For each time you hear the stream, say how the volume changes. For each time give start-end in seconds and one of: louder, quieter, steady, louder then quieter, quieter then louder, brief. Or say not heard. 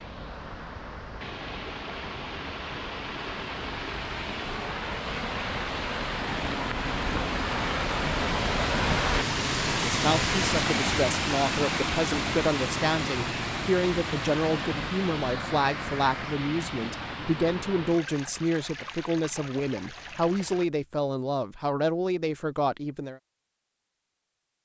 0.0-20.6 louder then quieter.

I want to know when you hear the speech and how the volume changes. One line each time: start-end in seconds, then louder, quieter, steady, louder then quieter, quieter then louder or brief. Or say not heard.
9.8-23.2 steady.